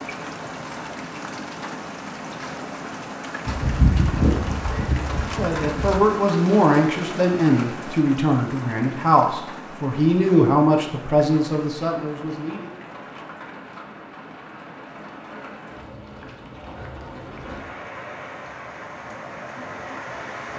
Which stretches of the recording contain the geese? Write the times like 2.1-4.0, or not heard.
3.5-6.0.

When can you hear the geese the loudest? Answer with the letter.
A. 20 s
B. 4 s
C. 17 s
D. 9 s
B.